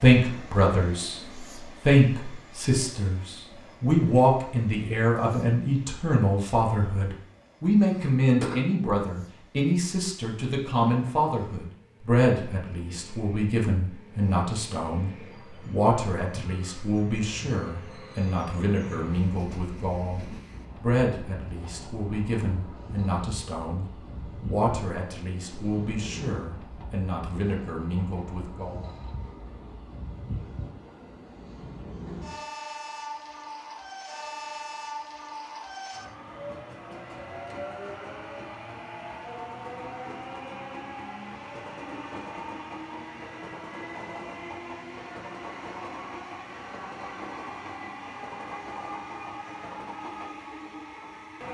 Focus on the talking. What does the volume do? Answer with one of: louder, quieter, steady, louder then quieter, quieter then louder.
quieter.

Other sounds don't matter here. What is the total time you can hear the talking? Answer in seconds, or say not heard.
29 s.